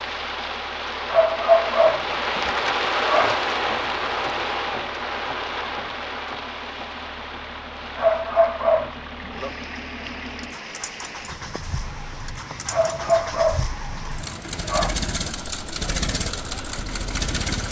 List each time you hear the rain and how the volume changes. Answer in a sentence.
You can hear the rain from 0.0 to 17.6 s, getting quieter.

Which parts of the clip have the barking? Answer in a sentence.
You can hear the barking from 1.1 to 3.4 s, from 8.0 to 9.4 s and from 12.7 to 14.9 s.